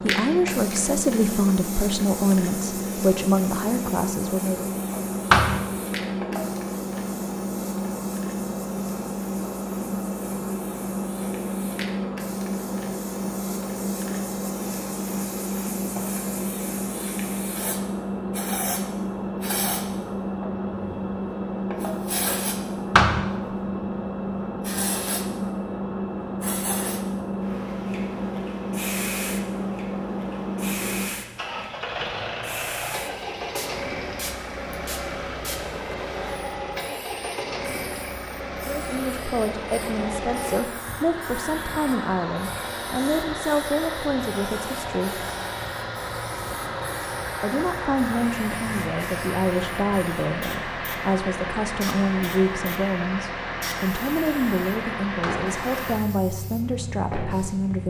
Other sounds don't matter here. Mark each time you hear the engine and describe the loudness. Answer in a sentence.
The engine can be heard from 0.0 to 57.8 s, at a steady volume.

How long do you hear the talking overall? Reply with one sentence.
You can hear the talking for 22 seconds altogether.